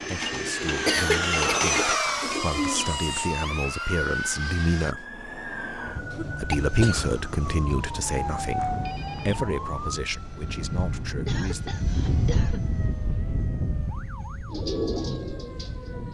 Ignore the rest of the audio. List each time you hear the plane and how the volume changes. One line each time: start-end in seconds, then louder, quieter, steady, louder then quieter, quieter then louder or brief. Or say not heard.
0.0-5.0 louder then quieter
6.5-16.0 louder then quieter.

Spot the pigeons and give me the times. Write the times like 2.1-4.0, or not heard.
0.0-3.4, 14.4-16.0.